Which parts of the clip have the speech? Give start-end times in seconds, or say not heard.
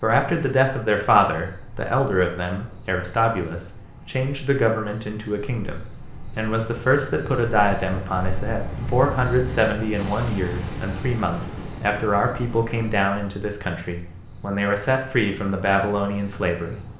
0.0-16.8.